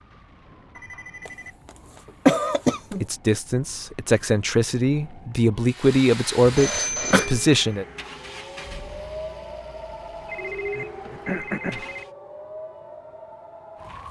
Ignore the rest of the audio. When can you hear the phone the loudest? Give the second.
7 s.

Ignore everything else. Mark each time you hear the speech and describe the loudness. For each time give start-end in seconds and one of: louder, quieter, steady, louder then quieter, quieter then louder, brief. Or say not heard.
3.0-7.8 louder then quieter.